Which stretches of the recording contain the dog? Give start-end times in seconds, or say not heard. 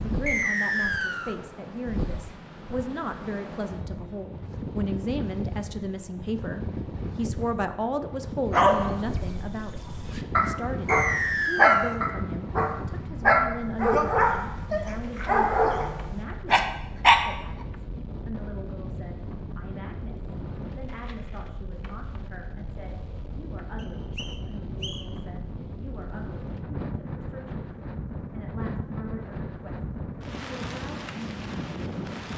8.5-17.2.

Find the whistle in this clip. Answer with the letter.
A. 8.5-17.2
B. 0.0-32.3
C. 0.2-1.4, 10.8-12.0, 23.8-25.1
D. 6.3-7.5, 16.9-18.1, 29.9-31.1
C.